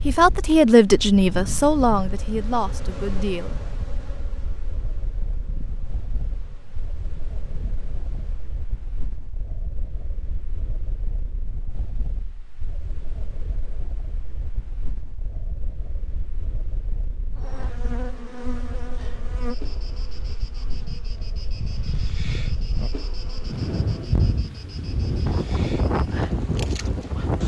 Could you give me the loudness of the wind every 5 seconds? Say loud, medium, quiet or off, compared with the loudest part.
quiet, quiet, quiet, quiet, medium, loud.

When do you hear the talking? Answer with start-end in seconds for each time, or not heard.
0.0-3.6.